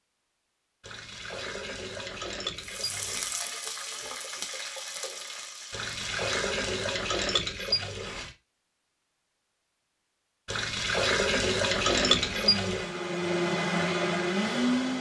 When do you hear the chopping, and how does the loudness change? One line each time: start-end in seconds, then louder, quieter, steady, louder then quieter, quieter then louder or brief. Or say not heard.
not heard.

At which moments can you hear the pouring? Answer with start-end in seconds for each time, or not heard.
0.8-3.4, 5.7-8.3, 10.4-12.9.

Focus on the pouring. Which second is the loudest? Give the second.
12 s.